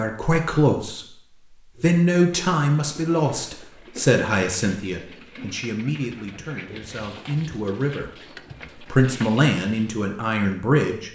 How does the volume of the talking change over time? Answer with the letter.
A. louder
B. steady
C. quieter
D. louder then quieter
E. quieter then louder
E.